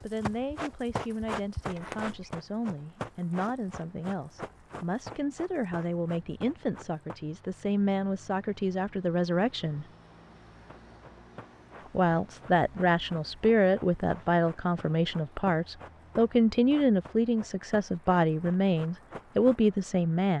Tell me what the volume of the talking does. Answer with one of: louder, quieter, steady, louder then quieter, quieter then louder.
louder.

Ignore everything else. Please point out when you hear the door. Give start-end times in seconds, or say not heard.
1.6-2.3.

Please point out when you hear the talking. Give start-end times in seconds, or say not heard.
0.0-9.8, 11.9-20.3.